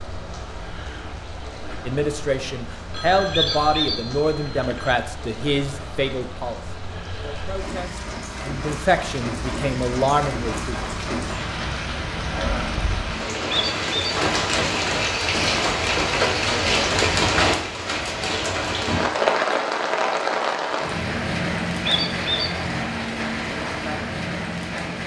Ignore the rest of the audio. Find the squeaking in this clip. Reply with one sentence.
The squeaking can be heard from 3.3 to 4.0 s, from 13.5 to 14.2 s and from 21.9 to 22.5 s.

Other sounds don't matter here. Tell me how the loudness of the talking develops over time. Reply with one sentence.
The volume of the talking goes down, then up.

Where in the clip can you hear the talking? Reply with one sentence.
The talking can be heard from 1.9 to 10.9 s.